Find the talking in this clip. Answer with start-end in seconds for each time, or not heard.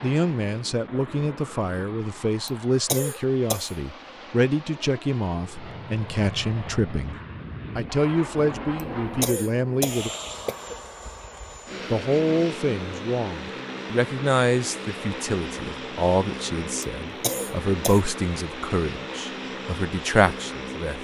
0.0-7.2, 7.8-10.1, 11.9-20.9.